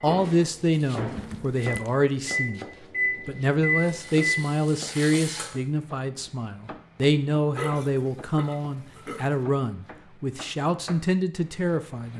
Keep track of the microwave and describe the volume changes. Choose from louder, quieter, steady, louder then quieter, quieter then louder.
quieter then louder.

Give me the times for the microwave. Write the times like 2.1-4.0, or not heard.
0.0-4.5.